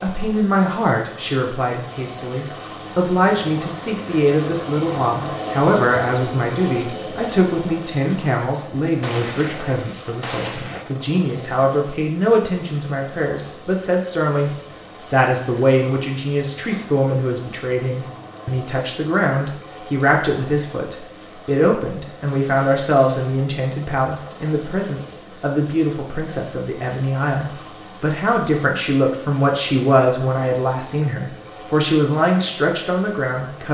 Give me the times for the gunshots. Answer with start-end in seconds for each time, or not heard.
9.0-10.8.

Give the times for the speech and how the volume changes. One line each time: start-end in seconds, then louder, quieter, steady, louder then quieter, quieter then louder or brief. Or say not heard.
0.0-33.7 steady.